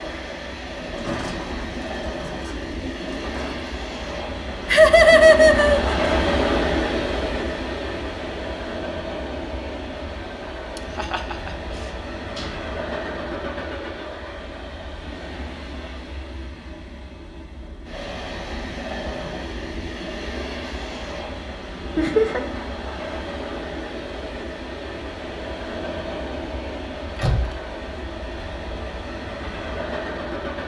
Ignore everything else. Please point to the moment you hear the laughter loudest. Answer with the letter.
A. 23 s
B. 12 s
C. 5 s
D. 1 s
C.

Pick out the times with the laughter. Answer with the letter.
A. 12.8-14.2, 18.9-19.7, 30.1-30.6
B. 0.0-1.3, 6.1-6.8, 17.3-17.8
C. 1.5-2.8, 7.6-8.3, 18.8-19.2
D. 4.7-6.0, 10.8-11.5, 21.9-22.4
D.